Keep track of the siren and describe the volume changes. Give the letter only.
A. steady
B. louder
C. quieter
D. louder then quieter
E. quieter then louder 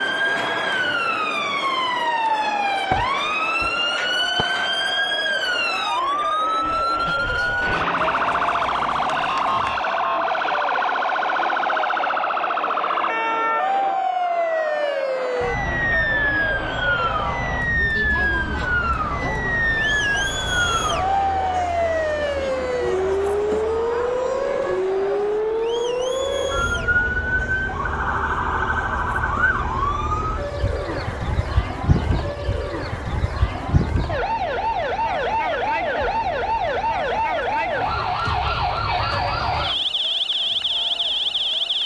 A.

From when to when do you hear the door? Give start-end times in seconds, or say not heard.
2.5-4.5.